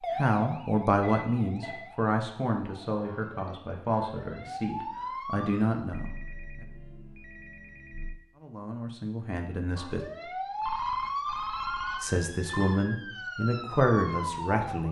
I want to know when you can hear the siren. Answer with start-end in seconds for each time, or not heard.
0.0-5.8, 9.8-14.8.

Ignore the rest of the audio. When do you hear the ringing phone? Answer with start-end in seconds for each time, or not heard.
1.0-1.9, 5.9-8.2, 10.2-12.8.